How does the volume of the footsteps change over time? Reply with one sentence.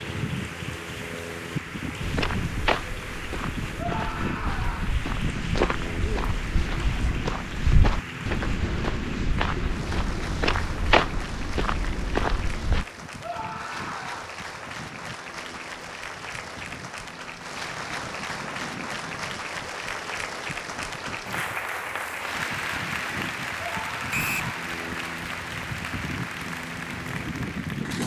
The loudness of the footsteps goes up.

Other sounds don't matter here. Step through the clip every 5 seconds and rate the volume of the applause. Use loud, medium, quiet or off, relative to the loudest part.
medium, medium, medium, loud, loud, loud.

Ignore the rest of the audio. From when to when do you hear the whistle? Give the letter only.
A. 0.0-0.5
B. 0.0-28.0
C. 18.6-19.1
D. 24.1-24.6
D.